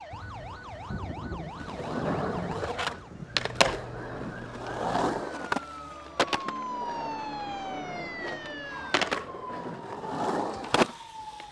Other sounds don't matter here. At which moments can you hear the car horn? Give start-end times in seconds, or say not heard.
not heard.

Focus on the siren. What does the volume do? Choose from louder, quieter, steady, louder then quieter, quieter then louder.
louder then quieter.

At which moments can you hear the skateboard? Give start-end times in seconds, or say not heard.
1.6-11.4.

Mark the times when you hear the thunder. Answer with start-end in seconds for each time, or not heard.
0.1-4.0.